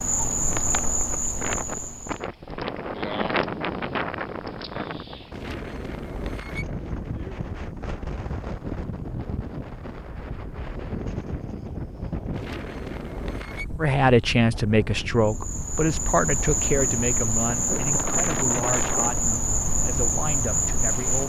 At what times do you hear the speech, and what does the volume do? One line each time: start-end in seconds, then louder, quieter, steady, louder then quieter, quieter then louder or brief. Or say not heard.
13.8-21.2 quieter.